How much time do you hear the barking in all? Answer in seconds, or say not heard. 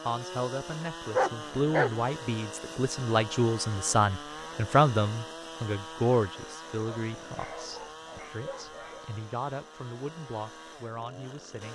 3 s.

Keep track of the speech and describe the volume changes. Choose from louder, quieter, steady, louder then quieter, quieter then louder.
louder then quieter.